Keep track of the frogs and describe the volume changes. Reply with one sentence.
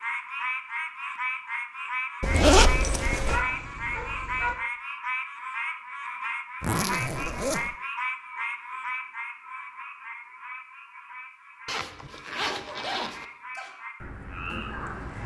The loudness of the frogs goes down.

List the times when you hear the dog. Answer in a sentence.
You can hear the dog from 3.3 to 4.5 s and from 11.8 to 13.8 s.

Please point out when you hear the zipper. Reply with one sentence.
You can hear the zipper from 2.2 to 3.5 s, from 6.6 to 7.7 s and from 11.7 to 13.2 s.